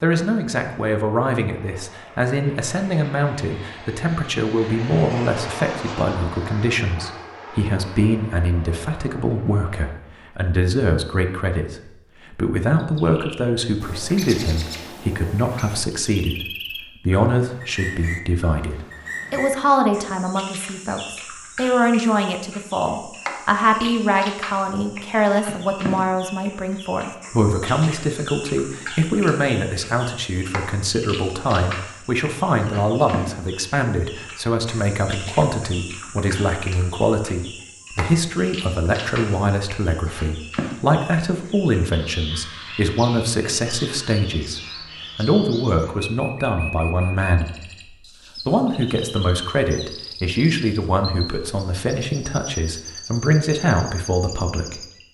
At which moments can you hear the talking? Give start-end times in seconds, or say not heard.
0.0-54.9.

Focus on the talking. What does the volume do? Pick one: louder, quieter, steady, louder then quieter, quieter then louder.
steady.